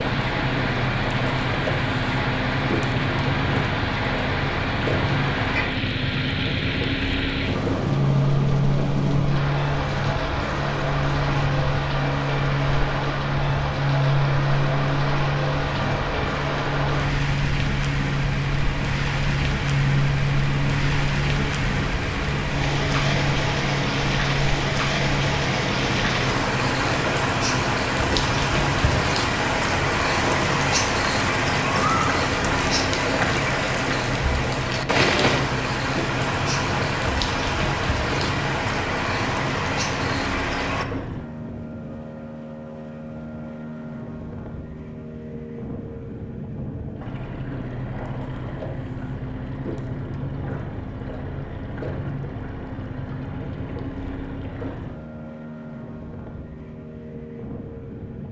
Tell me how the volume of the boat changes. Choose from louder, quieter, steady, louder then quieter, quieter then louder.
quieter.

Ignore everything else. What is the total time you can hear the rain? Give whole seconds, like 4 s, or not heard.
41 s.